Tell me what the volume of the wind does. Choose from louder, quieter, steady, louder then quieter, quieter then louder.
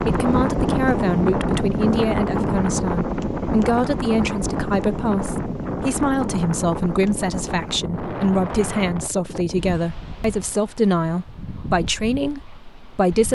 quieter.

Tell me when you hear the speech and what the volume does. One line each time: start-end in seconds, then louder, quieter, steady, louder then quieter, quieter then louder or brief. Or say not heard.
0.1-13.2 steady.